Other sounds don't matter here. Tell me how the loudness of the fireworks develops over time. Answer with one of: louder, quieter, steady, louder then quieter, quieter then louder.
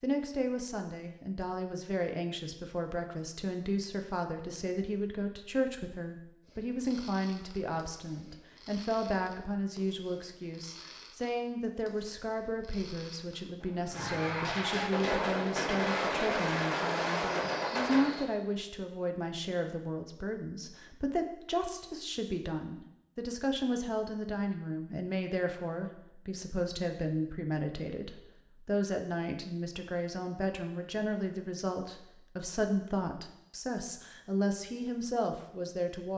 louder.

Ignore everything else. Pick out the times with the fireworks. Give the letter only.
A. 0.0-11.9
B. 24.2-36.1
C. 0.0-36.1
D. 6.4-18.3
D.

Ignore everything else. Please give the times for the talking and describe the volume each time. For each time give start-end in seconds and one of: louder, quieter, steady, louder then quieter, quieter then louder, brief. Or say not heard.
0.0-36.1 steady.